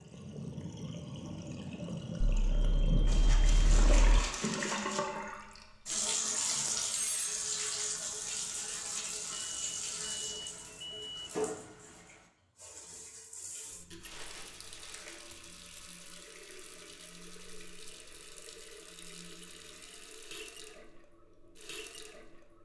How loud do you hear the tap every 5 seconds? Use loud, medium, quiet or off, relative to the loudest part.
loud, loud, medium, quiet, quiet.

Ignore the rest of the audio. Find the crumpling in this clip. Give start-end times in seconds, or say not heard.
3.0-5.0, 14.1-15.2.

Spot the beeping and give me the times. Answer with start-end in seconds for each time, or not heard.
2.5-4.2, 9.3-11.3, 15.3-15.8.